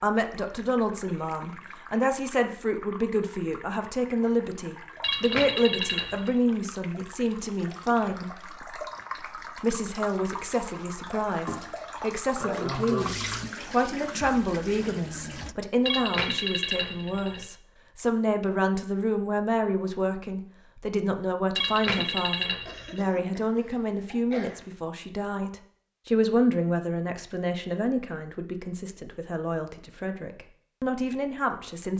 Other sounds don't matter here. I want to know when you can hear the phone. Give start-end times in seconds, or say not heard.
5.0-6.3, 15.8-17.5, 21.6-23.0.